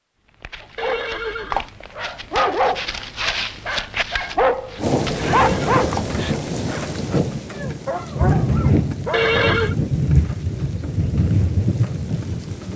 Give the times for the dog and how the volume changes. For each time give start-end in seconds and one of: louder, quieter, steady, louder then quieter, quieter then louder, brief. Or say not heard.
0.4-9.3 louder then quieter.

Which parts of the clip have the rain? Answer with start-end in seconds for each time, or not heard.
4.8-12.7.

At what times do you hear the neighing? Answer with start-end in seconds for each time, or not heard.
0.8-1.7, 5.3-6.3, 9.1-9.8.